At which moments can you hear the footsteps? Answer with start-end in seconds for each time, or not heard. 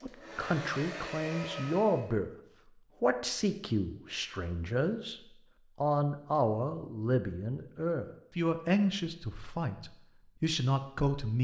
not heard.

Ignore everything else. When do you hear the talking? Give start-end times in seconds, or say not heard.
0.0-2.3, 3.0-5.2, 5.8-11.3.